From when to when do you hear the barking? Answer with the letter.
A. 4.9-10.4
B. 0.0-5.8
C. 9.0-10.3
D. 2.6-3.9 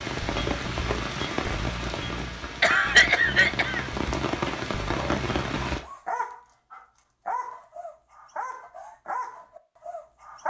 A.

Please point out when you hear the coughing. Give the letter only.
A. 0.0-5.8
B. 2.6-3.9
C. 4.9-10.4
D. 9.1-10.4
B.